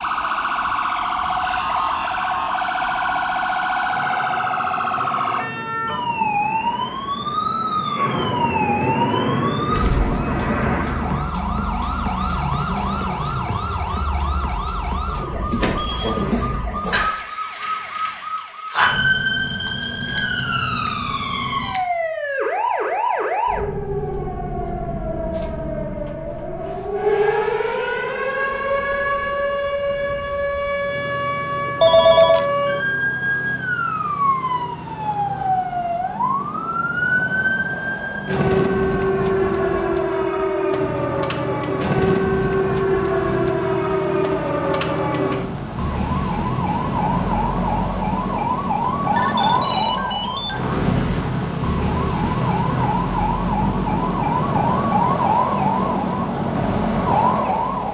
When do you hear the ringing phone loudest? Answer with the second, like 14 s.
32 s.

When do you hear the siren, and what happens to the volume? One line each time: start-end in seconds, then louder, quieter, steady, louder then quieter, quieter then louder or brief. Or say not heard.
0.0-57.8 steady.